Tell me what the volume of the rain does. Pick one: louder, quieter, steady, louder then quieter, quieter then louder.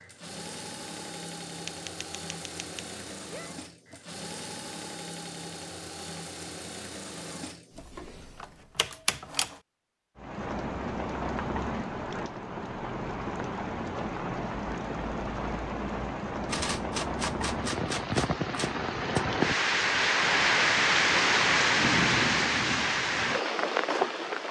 louder.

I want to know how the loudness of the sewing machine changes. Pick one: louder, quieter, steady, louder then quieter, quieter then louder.
quieter.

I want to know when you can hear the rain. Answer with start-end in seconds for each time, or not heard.
10.2-24.4.